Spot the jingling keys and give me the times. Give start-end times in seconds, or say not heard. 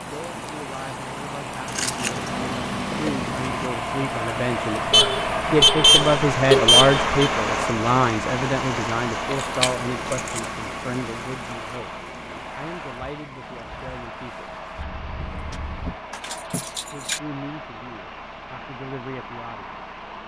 1.6-3.7, 9.3-10.5, 15.2-17.2.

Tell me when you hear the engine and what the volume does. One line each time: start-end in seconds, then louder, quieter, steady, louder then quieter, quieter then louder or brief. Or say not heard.
0.0-20.2 louder then quieter.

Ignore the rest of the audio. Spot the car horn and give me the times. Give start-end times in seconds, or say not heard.
4.9-7.3, 14.8-15.9.